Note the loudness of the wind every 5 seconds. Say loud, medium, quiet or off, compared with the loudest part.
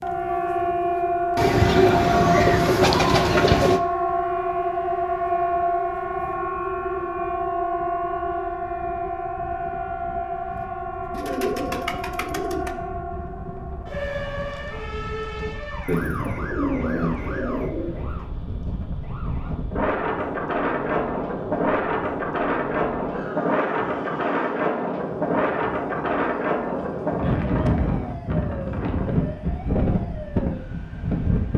quiet, quiet, quiet, medium, loud, loud, loud.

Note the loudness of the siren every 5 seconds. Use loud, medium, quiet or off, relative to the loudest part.
loud, loud, medium, quiet, quiet, quiet, quiet.